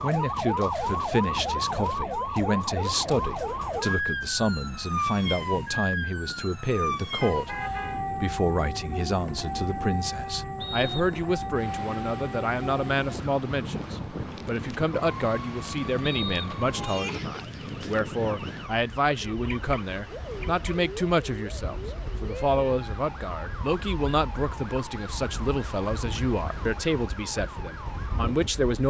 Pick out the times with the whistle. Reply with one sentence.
You can hear the whistle from 10.6 to 11.3 s and from 16.0 to 17.0 s.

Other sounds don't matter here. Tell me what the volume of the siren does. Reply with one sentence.
The volume of the siren goes down.